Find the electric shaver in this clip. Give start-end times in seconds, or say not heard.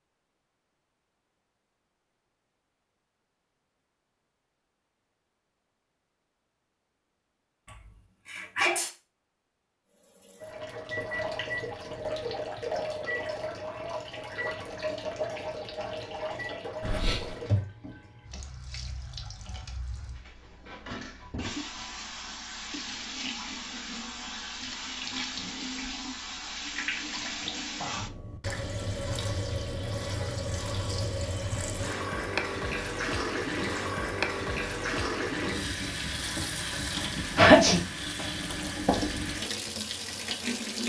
not heard.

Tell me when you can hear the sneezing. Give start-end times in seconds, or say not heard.
7.7-8.9, 16.8-17.4, 37.4-37.8.